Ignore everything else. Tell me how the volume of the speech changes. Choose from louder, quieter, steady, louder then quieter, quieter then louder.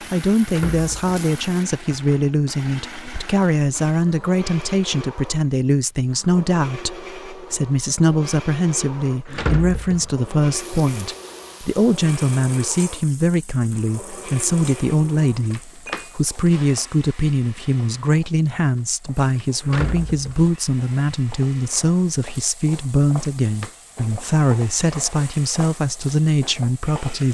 steady.